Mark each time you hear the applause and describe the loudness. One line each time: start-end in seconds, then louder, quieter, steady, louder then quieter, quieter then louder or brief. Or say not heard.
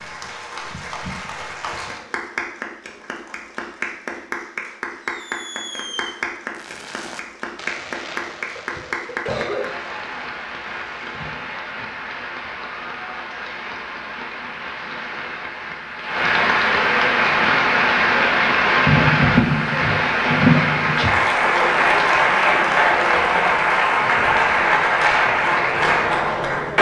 0.0-26.7 louder.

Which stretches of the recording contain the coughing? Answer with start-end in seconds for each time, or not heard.
8.4-9.8.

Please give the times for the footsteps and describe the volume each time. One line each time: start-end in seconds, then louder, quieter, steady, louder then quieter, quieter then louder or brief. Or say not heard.
not heard.